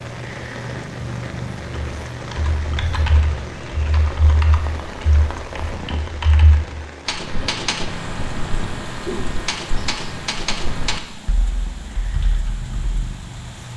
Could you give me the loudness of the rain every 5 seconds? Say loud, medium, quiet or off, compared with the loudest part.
loud, loud, medium.